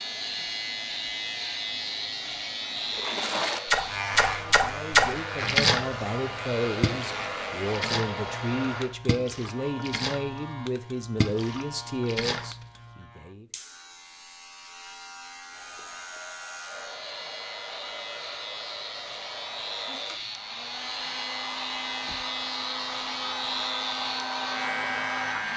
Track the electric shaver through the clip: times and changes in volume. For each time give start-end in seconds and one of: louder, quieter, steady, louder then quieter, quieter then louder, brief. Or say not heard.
0.0-25.5 quieter then louder.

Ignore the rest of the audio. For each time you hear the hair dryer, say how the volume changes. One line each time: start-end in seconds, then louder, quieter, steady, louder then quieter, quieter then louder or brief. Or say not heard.
0.0-8.9 louder
15.5-25.5 louder.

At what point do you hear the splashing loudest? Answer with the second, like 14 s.
5 s.